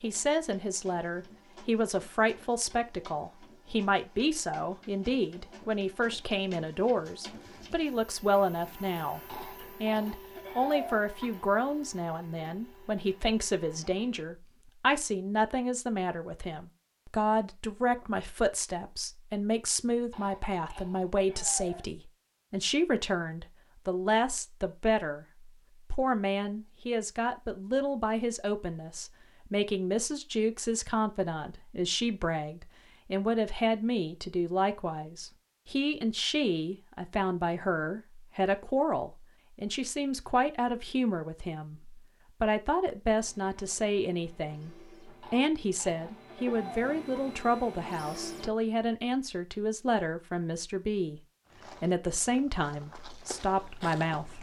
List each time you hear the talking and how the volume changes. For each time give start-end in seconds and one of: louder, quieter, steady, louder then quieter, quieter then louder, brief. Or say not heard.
0.0-51.2 steady
51.8-54.3 brief.